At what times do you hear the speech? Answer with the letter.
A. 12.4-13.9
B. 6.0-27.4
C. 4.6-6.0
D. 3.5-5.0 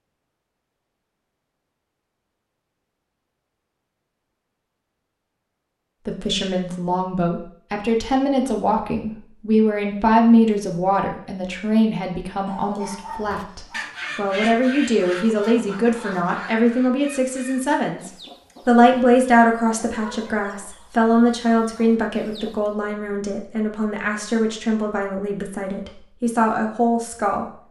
B.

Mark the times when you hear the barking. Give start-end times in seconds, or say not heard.
12.4-13.9.